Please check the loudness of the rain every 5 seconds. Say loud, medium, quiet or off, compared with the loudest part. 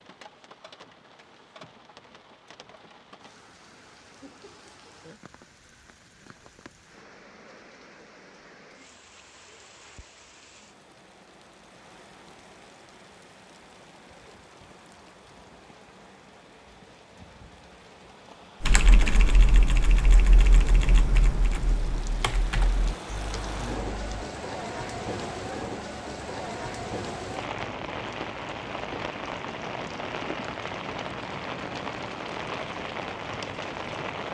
quiet, quiet, quiet, quiet, loud, loud, loud.